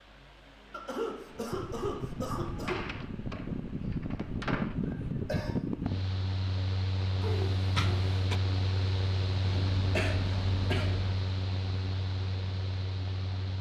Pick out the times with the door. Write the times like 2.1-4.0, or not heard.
2.5-4.8, 7.2-8.4.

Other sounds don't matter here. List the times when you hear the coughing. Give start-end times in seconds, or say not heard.
0.7-2.8, 4.8-5.5, 9.4-11.1.